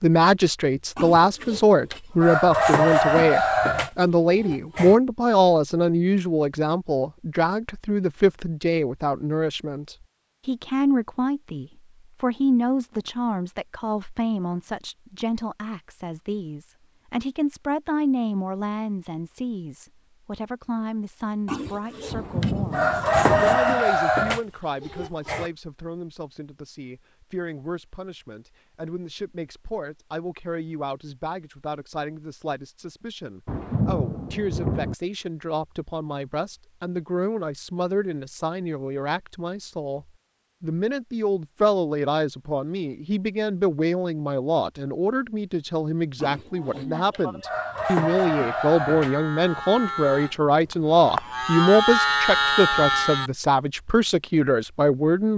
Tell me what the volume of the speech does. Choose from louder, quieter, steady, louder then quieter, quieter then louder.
quieter then louder.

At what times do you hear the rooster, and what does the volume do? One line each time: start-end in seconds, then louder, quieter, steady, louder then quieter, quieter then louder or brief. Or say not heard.
0.9-5.0 louder then quieter
21.4-25.5 louder then quieter
46.2-49.1 brief.